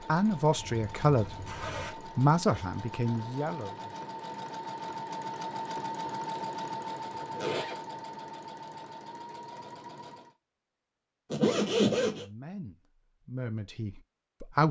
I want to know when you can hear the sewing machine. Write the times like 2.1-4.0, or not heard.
0.0-10.3.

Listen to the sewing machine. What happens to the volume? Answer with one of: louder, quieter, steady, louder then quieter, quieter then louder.
louder then quieter.